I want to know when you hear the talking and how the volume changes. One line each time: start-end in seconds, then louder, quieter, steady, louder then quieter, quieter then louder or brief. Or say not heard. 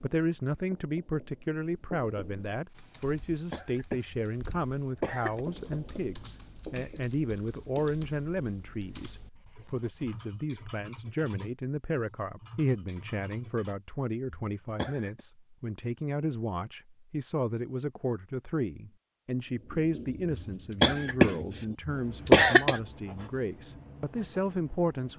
0.0-25.1 steady.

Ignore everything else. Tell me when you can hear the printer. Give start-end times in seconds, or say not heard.
not heard.